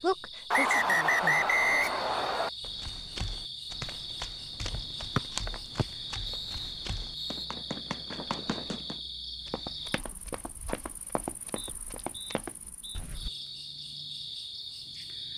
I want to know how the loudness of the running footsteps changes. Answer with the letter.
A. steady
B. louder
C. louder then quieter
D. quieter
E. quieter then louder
A.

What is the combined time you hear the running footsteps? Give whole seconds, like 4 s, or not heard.
10 s.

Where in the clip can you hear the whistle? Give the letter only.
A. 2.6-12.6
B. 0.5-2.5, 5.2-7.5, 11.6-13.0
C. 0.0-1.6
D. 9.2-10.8
B.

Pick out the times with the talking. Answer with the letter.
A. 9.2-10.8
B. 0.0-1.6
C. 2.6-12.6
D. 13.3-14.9
B.